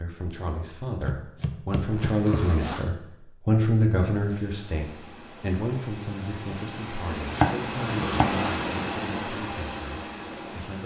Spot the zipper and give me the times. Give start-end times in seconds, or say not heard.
1.9-3.0, 7.8-8.6.